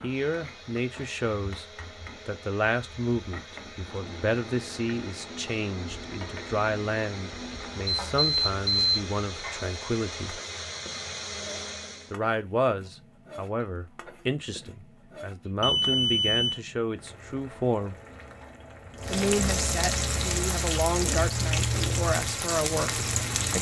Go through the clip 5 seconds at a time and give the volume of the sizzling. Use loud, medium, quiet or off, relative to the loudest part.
quiet, quiet, quiet, medium, loud.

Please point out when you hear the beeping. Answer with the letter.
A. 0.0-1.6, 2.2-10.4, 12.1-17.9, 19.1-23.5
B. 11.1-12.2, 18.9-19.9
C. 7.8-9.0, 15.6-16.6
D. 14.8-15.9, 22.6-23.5
C.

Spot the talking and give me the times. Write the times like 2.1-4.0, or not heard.
0.0-1.6, 2.2-10.4, 12.1-17.9, 19.1-23.5.